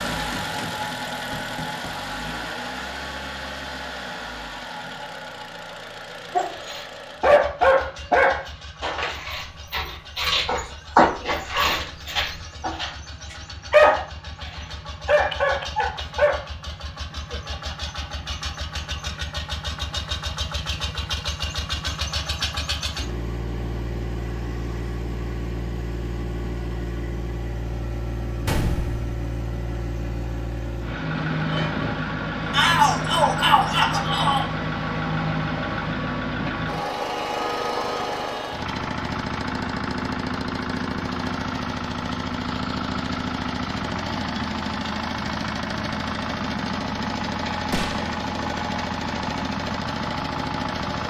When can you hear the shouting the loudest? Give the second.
33 s.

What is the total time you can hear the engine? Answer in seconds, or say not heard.
51 s.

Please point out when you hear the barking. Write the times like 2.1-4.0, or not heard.
6.3-16.4.